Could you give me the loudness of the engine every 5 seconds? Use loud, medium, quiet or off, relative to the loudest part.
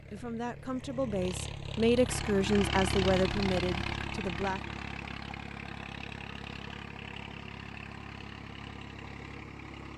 loud, medium.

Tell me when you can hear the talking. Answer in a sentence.
The talking can be heard from 0.1 to 4.6 s.